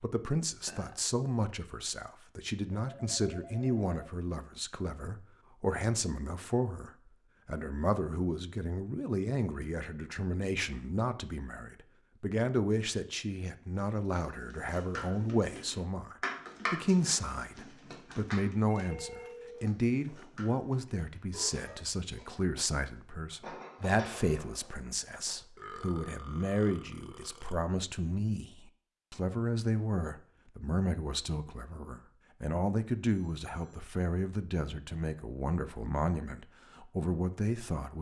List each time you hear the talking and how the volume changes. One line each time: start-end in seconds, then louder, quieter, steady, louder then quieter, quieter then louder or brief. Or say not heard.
0.0-37.9 steady.